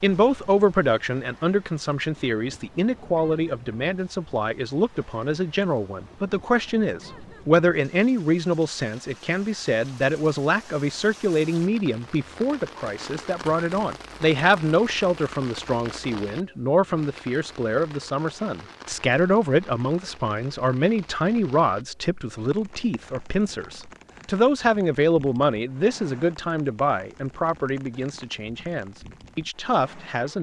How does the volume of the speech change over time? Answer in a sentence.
The volume of the speech stays about the same.